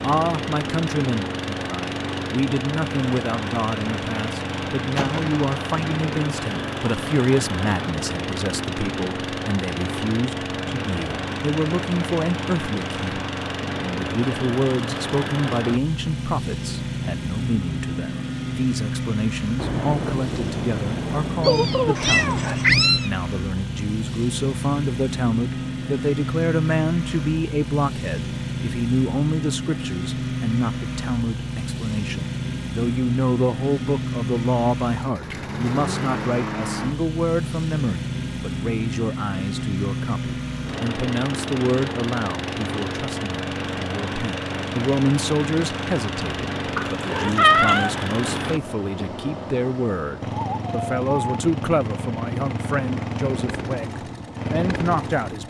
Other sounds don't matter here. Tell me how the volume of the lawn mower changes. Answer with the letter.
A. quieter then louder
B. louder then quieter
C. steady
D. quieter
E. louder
C.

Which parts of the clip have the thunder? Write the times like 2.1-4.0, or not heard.
19.6-23.1.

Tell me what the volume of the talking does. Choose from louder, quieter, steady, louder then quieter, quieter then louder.
steady.